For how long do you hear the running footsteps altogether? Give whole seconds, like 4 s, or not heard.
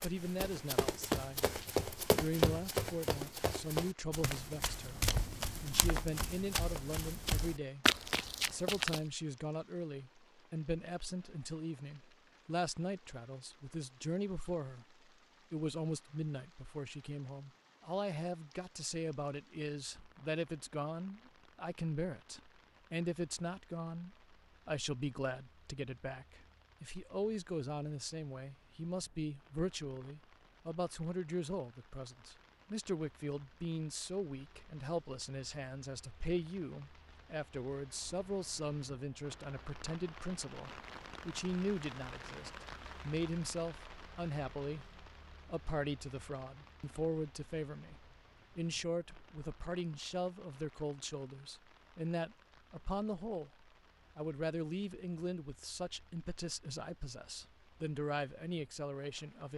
9 s.